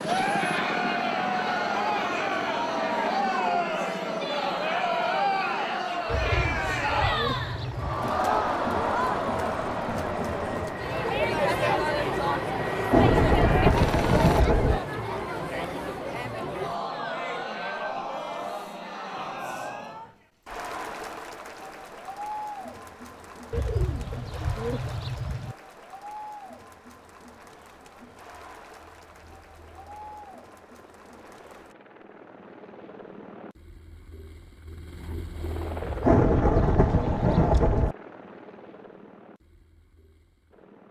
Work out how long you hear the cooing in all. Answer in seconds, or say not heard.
6 s.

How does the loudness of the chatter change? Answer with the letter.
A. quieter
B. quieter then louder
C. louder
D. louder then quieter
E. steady
A.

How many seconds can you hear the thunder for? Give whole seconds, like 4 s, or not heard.
4 s.